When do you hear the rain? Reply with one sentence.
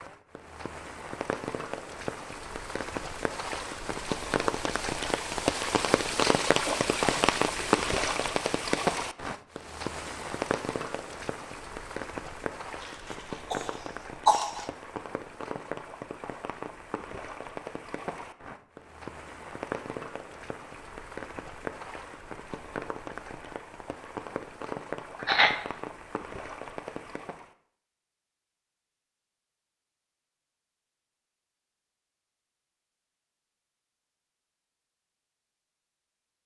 The rain can be heard from 0.0 to 27.6 s.